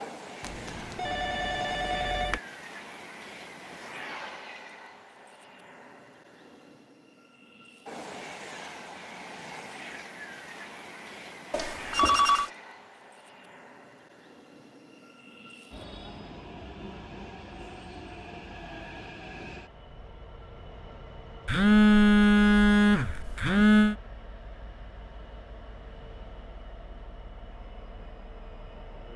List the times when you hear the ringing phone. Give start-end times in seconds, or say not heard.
0.4-2.4, 11.5-12.5, 21.4-23.9.